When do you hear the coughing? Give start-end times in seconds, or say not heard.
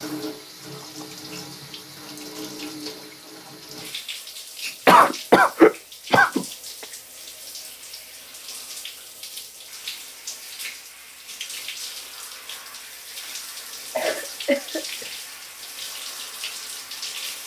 4.6-6.5, 13.9-15.1.